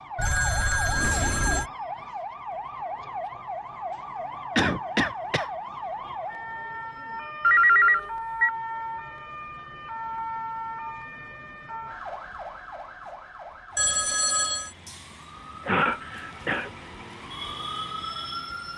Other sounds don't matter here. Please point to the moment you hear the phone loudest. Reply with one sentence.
The volume of the phone peaks at 8 seconds.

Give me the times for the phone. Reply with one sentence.
The phone can be heard from 0.1 to 1.6 s, from 7.4 to 8.5 s and from 13.8 to 14.7 s.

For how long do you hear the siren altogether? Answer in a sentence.
The siren can be heard for 19 seconds in total.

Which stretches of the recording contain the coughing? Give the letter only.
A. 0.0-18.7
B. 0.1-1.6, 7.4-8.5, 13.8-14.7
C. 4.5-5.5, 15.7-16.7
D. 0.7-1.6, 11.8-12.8
C.